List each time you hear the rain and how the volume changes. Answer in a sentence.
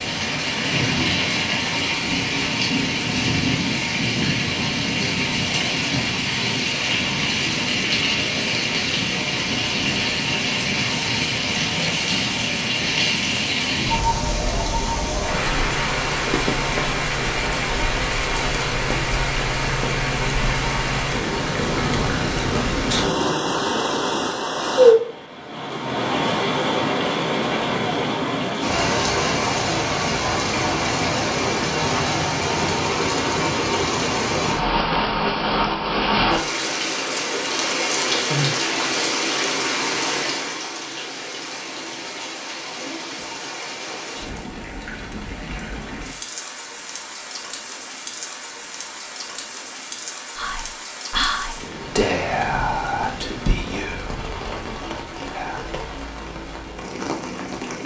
The rain can be heard from 0.0 to 57.8 s, getting quieter.